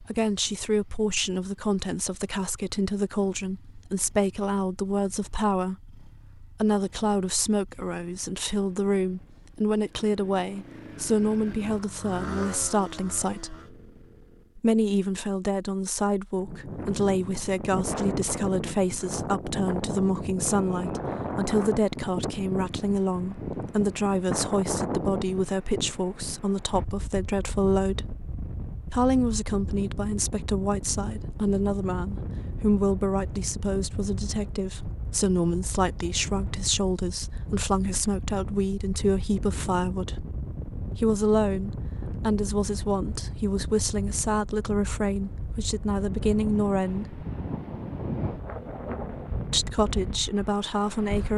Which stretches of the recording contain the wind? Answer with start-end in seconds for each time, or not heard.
16.4-51.3.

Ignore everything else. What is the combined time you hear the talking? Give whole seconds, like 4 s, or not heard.
47 s.